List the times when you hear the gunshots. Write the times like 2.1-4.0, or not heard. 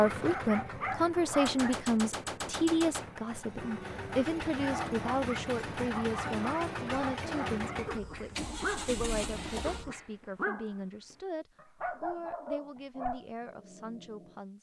1.4-3.1.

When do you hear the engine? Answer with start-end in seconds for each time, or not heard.
0.0-9.9.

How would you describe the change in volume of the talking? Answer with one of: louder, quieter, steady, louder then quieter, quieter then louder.
quieter.